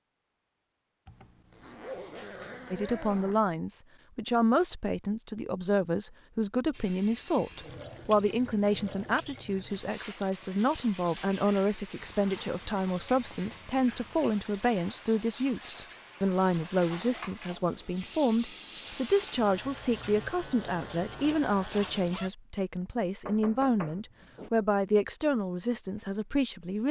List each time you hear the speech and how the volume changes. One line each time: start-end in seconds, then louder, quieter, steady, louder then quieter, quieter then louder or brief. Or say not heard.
2.7-26.8 steady.